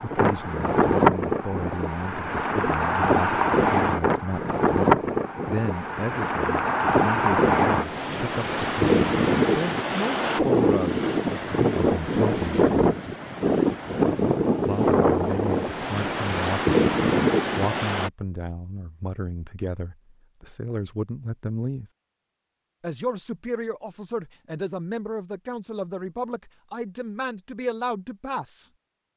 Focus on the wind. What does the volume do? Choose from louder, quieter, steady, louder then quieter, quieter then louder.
steady.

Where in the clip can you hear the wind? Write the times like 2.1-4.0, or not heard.
0.0-18.1.